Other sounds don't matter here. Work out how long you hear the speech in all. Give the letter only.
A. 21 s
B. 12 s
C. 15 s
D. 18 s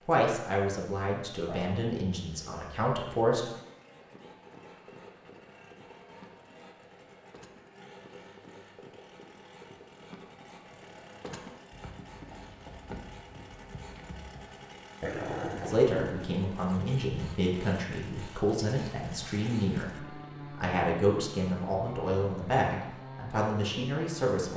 B.